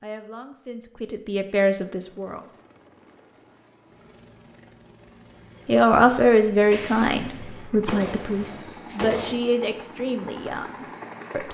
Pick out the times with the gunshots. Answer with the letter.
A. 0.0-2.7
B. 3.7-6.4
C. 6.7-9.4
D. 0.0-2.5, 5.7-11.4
C.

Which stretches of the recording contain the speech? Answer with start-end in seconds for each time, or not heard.
0.0-2.5, 5.7-11.4.